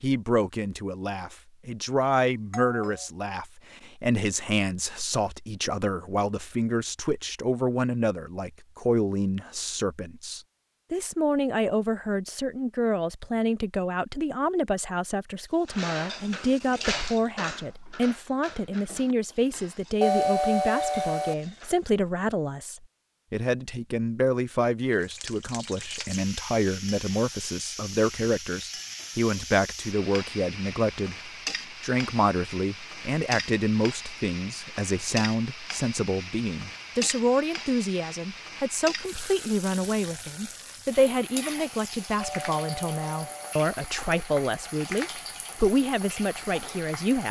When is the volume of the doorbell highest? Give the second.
20 s.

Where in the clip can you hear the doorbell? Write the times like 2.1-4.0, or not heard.
2.5-3.0, 20.0-21.4, 42.2-43.5.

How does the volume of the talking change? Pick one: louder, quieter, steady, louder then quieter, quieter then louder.
steady.